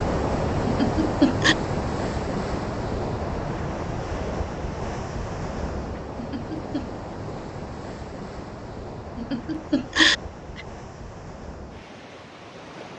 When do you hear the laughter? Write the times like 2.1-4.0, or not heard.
0.7-1.6, 6.2-6.8, 9.2-10.6.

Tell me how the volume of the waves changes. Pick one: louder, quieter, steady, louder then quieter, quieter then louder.
quieter.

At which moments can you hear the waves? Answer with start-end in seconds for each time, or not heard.
0.0-12.9.